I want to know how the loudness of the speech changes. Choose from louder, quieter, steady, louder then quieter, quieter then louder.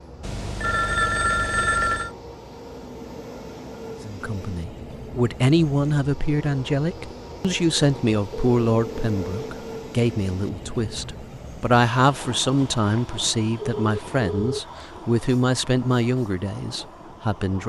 steady.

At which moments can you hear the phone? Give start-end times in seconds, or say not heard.
0.2-2.1, 8.3-9.5, 12.6-14.9.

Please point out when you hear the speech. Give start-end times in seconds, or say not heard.
4.0-17.6.